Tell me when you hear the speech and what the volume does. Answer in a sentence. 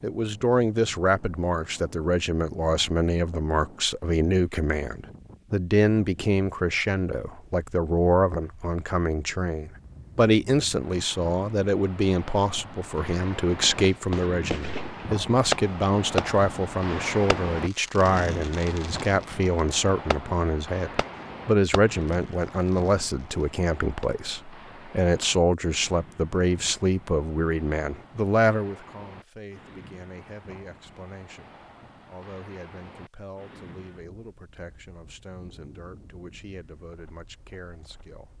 You can hear the speech from 0.0 to 38.3 s, getting quieter.